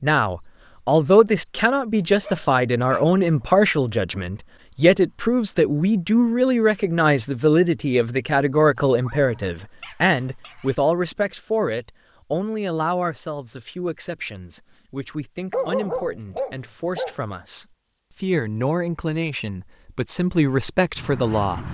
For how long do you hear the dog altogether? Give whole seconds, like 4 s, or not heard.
5 s.